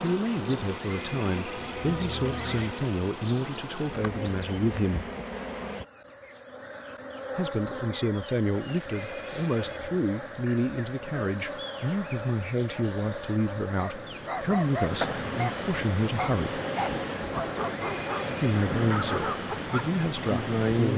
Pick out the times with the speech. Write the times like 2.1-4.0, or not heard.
0.0-5.1, 7.3-16.6, 18.4-20.9.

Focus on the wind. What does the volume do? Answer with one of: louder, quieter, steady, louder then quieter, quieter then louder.
louder.